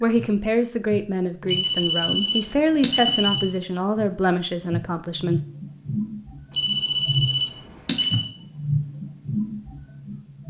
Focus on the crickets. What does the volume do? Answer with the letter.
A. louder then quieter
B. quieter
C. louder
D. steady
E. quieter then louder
C.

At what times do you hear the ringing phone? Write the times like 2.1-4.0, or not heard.
1.4-3.5, 6.5-8.3.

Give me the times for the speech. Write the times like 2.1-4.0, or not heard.
0.0-5.4.